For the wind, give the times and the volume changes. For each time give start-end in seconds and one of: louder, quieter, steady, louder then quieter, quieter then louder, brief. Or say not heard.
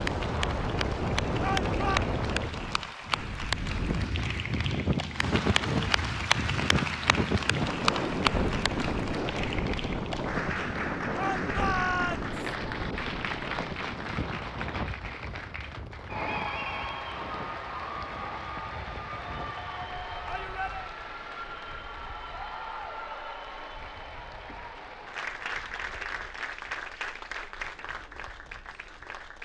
0.0-29.3 quieter.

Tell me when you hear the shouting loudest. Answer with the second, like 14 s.
12 s.